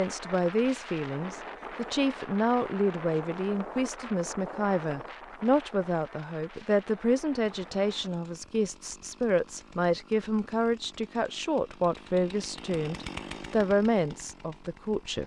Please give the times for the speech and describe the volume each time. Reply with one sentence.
You can hear the speech from 0.0 to 15.2 s, at a steady volume.